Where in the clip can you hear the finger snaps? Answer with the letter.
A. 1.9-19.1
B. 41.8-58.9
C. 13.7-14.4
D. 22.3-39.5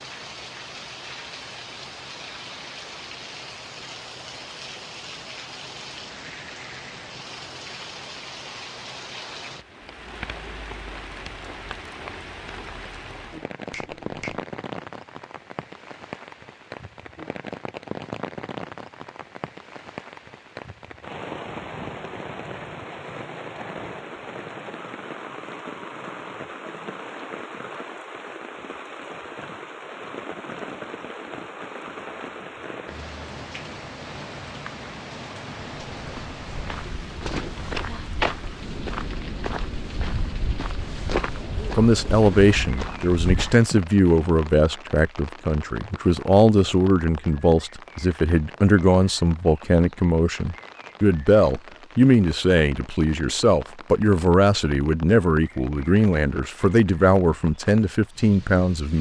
C.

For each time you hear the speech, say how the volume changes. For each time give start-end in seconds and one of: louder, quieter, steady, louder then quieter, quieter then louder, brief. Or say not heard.
41.8-58.9 steady.